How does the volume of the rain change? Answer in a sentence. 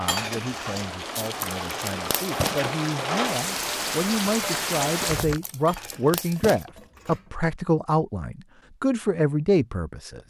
The volume of the rain goes up.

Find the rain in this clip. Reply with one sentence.
The rain can be heard from 0.0 to 5.4 s.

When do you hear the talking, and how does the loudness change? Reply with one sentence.
The talking can be heard from 0.0 to 10.2 s, getting louder.